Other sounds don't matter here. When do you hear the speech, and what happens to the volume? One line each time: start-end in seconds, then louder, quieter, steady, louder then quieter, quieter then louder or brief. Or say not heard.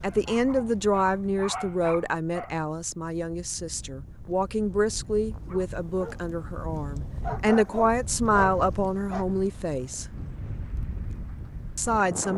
0.0-10.1 quieter then louder
11.8-12.3 brief.